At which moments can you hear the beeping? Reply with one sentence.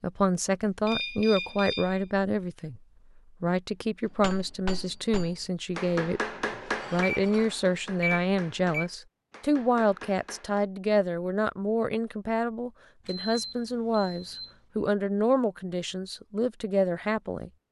The beeping can be heard from 0.8 to 2.0 s, from 6.3 to 8.8 s and from 13.1 to 14.6 s.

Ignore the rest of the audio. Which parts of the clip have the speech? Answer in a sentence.
The speech can be heard from 0.0 to 2.8 s, from 3.4 to 6.2 s and from 6.9 to 17.5 s.